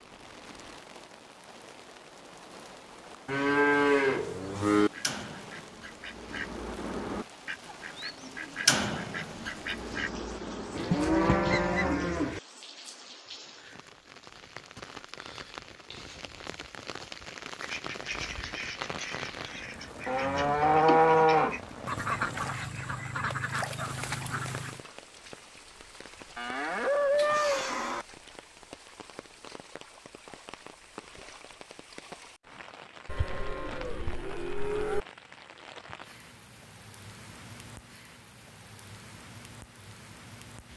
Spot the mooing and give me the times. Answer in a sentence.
The mooing can be heard from 3.2 to 4.9 s, from 10.7 to 12.4 s, from 20.1 to 21.6 s, from 26.4 to 28.1 s and from 33.0 to 35.0 s.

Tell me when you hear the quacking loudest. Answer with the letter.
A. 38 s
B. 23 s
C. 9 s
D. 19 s
C.